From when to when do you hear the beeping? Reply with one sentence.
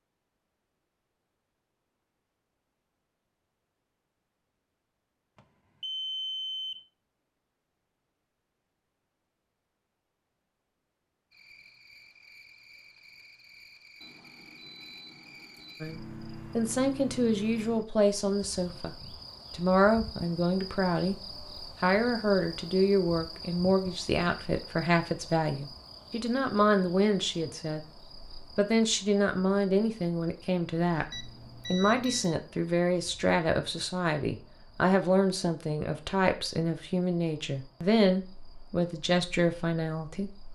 You can hear the beeping from 5.3 to 6.8 s, from 14.0 to 15.8 s and from 31.1 to 32.4 s.